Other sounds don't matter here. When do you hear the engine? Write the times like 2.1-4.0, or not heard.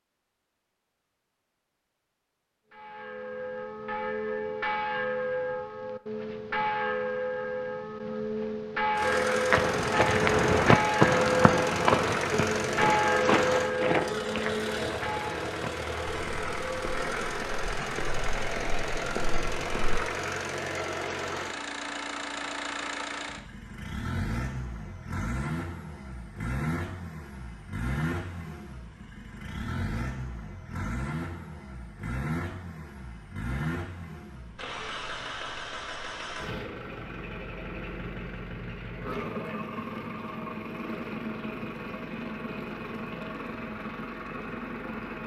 8.9-45.2.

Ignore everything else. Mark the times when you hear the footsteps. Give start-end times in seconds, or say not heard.
9.5-20.0.